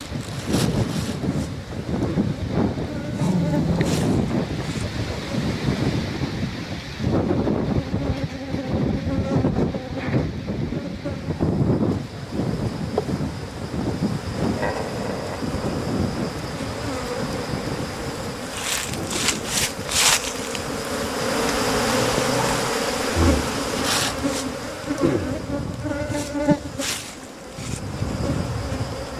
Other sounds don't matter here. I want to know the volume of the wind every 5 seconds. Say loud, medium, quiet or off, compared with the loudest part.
loud, loud, loud, medium, quiet, medium.